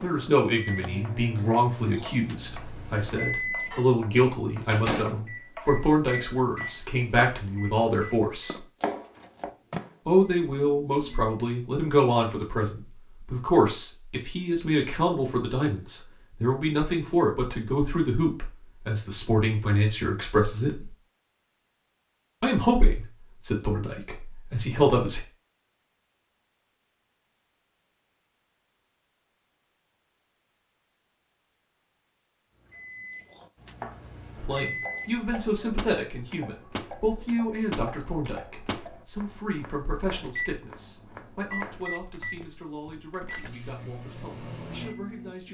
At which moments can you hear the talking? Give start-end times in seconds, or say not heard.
0.0-8.6, 10.1-20.9, 22.4-25.2, 34.4-45.4.